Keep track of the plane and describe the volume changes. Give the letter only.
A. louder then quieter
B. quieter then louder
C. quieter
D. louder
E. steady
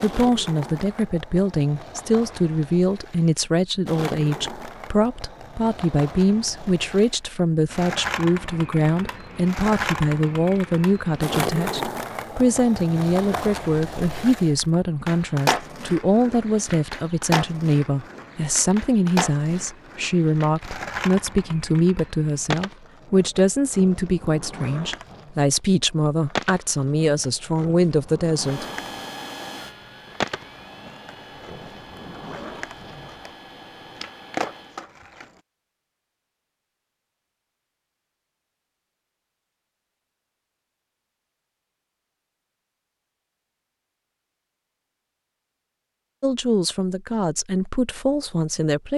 C.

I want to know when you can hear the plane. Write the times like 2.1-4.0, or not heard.
28.3-34.9.